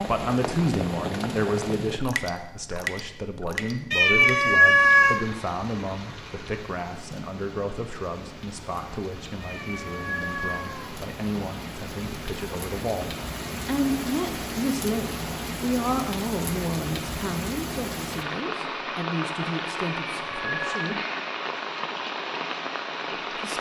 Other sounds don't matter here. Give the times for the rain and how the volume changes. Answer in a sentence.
The rain can be heard from 0.0 to 23.5 s, getting quieter then louder.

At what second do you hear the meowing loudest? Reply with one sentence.
The volume of the meowing peaks at 5 seconds.